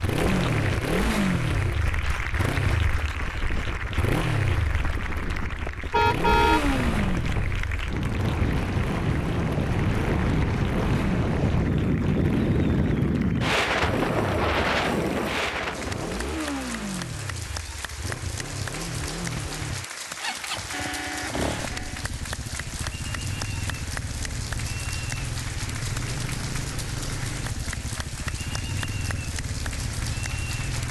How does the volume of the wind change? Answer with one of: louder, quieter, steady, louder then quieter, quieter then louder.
louder.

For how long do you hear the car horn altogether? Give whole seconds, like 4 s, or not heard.
2 s.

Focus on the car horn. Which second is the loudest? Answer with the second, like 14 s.
6 s.